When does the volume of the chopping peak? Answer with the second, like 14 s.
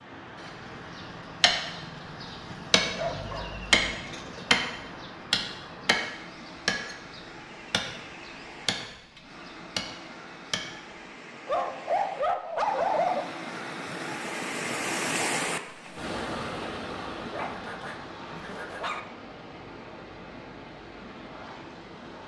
4 s.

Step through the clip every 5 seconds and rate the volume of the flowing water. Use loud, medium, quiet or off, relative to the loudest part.
medium, medium, loud, loud, medium.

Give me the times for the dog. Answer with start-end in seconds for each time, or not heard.
2.5-4.5, 11.4-13.2, 17.2-19.0.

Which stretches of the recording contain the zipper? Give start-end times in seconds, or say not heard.
not heard.